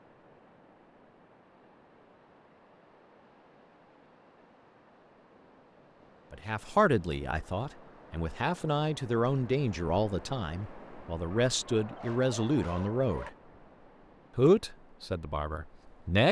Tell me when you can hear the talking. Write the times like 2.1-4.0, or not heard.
6.3-13.3, 14.3-16.2.